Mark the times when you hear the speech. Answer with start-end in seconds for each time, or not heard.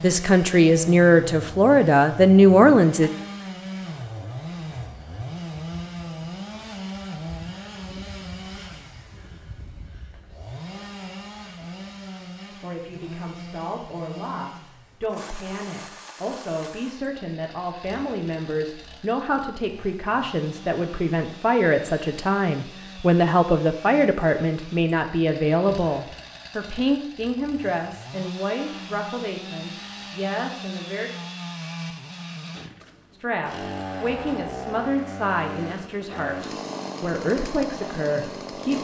0.0-3.1, 12.6-31.1, 33.1-38.7.